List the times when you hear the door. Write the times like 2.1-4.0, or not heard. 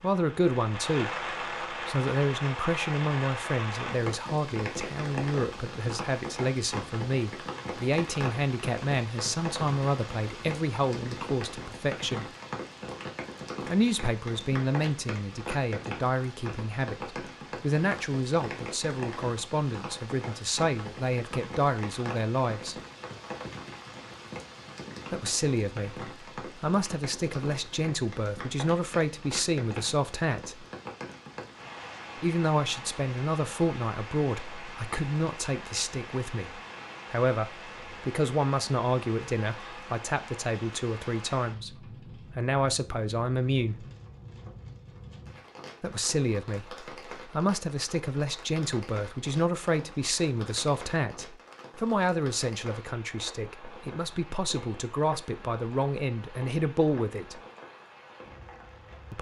not heard.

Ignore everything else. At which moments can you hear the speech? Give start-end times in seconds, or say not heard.
0.0-12.2, 13.7-22.8, 25.1-30.6, 32.1-43.9, 45.8-57.4.